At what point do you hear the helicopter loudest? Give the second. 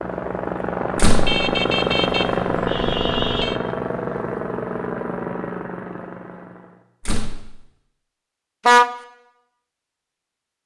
2 s.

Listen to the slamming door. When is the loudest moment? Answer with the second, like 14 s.
1 s.